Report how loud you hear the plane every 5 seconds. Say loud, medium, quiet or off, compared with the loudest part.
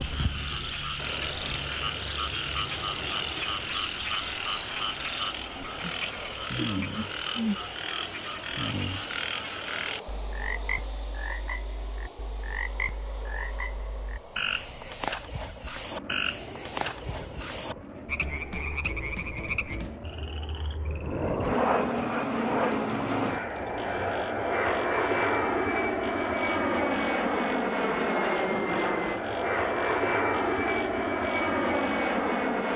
quiet, quiet, quiet, quiet, loud, loud, loud.